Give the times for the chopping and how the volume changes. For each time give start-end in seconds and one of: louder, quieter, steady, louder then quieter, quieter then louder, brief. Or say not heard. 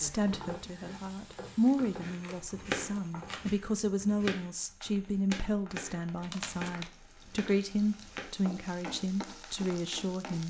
2.0-8.3 quieter.